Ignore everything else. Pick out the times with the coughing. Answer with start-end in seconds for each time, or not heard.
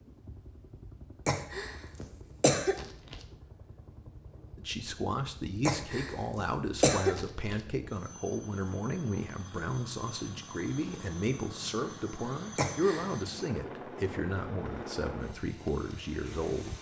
1.2-3.1, 5.7-7.5, 12.6-13.1.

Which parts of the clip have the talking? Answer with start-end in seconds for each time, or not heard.
4.5-16.7.